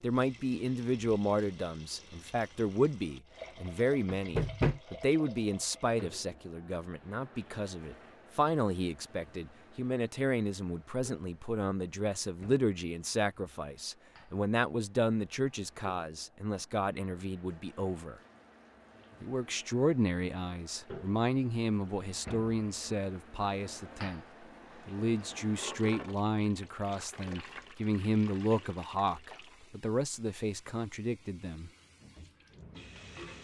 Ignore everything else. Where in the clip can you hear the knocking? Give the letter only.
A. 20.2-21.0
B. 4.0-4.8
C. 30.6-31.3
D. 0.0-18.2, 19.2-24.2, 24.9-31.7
B.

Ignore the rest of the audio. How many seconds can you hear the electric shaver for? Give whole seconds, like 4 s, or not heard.
not heard.